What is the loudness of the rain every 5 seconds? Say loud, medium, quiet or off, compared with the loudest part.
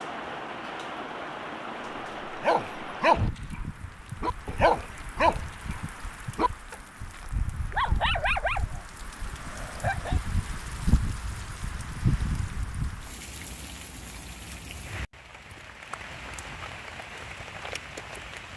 loud, medium, loud, medium.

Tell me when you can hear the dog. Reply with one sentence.
You can hear the dog from 2.4 to 8.8 s and from 9.5 to 10.2 s.